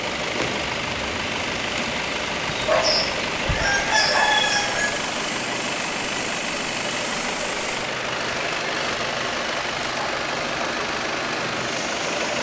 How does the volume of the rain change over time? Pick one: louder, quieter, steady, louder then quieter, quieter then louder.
steady.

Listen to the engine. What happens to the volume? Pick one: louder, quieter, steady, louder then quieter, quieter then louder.
steady.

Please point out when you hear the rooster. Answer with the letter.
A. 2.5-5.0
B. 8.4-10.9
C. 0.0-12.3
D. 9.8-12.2
A.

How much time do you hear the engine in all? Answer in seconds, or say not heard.
12 s.